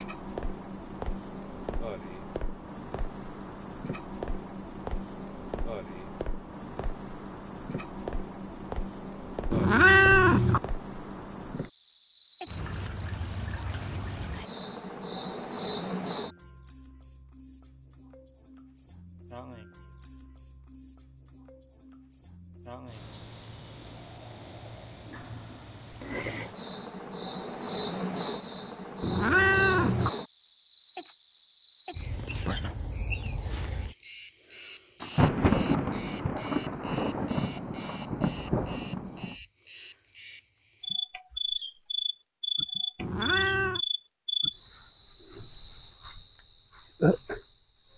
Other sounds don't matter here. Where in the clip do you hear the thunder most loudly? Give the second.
35 s.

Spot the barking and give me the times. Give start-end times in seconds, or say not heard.
not heard.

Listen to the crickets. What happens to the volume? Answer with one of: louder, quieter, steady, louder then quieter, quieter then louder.
louder.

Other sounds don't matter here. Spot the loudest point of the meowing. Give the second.
10 s.